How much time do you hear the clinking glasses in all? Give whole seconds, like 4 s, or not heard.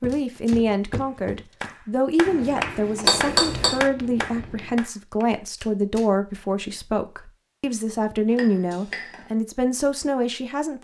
2 s.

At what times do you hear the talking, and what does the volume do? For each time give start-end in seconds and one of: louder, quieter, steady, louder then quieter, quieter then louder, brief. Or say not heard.
0.0-10.8 steady.